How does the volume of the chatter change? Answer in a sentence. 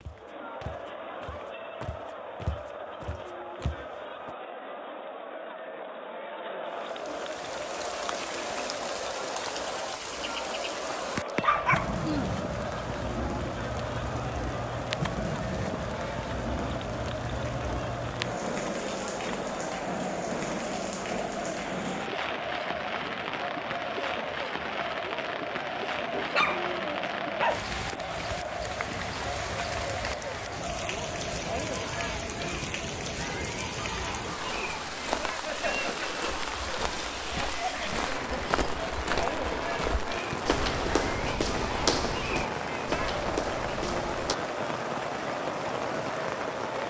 The volume of the chatter stays about the same.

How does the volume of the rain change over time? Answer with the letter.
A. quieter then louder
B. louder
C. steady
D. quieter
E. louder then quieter
C.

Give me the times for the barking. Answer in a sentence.
The barking can be heard from 10.8 to 12.3 s and from 26.1 to 27.6 s.